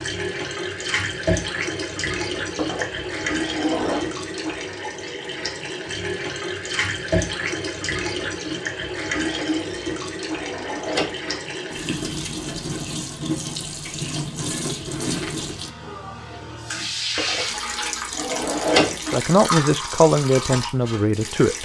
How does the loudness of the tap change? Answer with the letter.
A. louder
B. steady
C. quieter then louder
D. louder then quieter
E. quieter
B.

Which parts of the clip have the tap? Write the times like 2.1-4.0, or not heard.
0.0-21.6.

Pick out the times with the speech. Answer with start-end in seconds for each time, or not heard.
19.1-21.6.